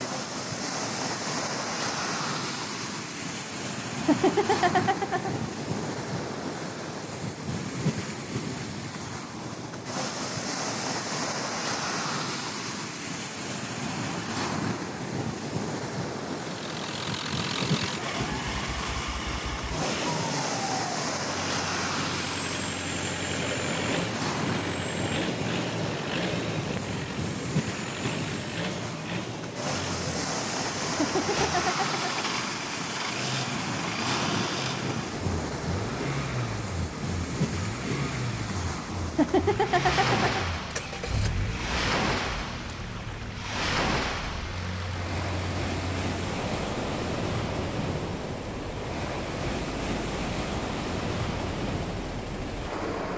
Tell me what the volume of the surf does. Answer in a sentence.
The volume of the surf stays about the same.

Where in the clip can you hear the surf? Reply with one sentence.
You can hear the surf from 0.0 to 53.1 s.